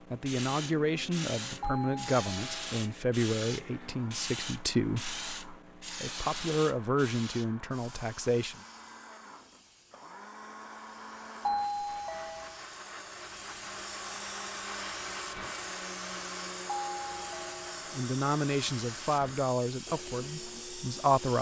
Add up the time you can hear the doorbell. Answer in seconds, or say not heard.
4 s.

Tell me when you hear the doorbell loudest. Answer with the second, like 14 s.
12 s.